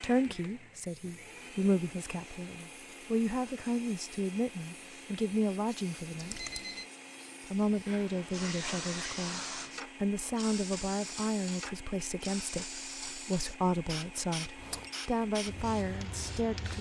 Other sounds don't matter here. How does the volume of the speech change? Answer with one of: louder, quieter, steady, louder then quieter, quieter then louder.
steady.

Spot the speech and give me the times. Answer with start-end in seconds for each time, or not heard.
0.0-6.4, 7.5-16.7.